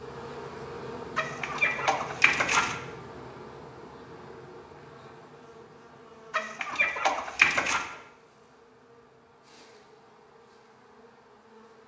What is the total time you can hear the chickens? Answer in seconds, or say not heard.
3 s.